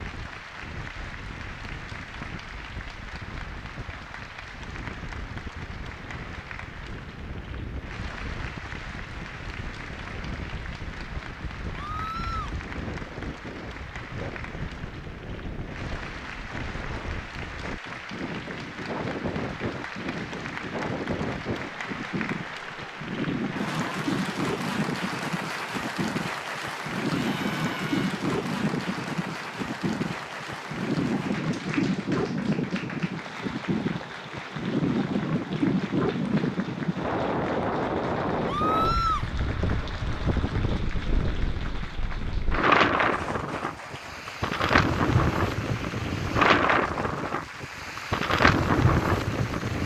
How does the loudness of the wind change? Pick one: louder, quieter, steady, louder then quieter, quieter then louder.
louder.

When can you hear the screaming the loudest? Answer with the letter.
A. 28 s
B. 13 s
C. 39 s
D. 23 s
C.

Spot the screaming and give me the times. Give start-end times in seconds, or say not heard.
11.8-12.6, 27.2-28.1, 38.5-39.2.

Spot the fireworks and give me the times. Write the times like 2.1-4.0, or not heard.
not heard.